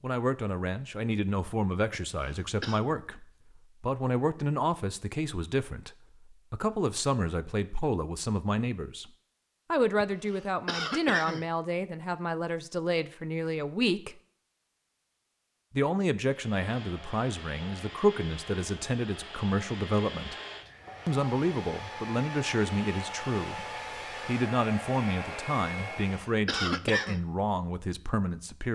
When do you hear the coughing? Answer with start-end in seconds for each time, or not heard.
2.1-2.8, 10.0-11.4, 26.1-27.2.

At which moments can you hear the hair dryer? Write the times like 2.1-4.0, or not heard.
16.2-26.4.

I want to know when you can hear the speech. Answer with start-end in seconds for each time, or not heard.
0.0-9.1, 9.7-14.2, 15.8-20.4, 21.1-23.6, 24.2-28.7.